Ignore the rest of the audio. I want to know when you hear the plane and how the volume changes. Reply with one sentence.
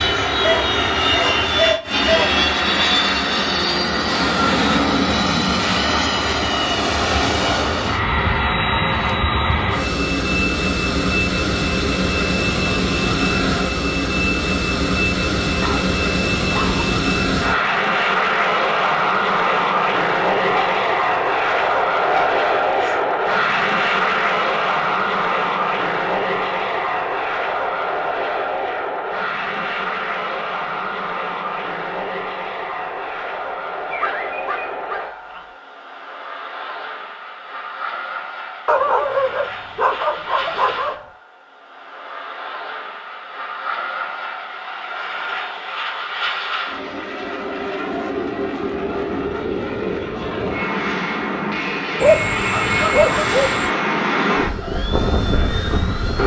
You can hear the plane from 0.0 to 56.2 s, getting quieter then louder.